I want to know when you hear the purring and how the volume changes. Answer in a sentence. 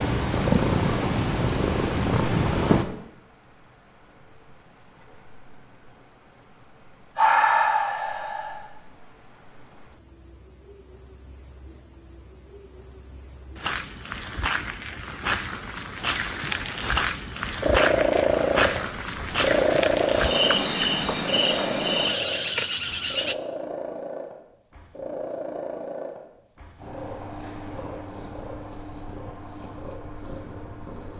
You can hear the purring briefly from 0.0 to 2.9 s; and from 17.6 to 31.1 s, getting quieter.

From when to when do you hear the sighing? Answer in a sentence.
The sighing can be heard from 7.2 to 8.7 s.